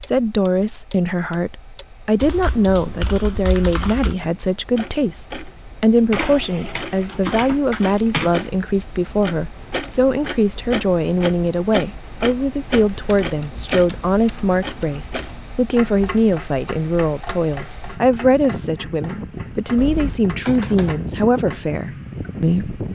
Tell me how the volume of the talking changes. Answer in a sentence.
The volume of the talking stays about the same.